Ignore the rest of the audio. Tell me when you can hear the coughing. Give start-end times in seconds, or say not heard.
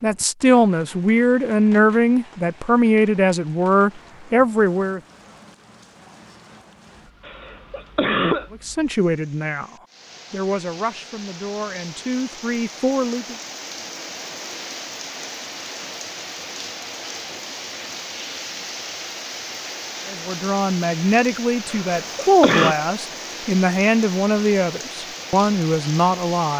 7.2-8.5, 21.6-22.8.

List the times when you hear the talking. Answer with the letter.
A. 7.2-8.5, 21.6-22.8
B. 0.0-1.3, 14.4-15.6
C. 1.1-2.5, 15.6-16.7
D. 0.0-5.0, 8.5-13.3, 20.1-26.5
D.